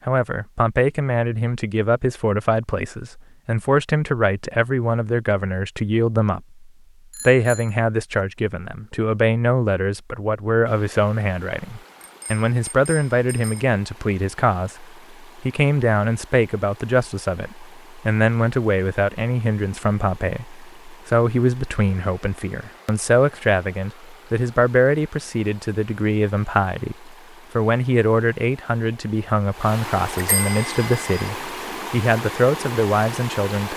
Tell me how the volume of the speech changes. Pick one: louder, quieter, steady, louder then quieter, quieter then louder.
steady.